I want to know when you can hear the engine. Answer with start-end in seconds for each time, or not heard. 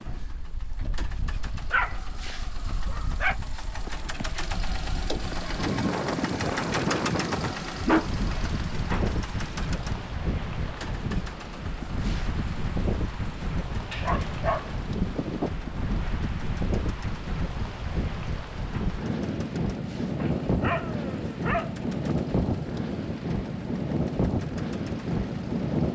0.0-25.8.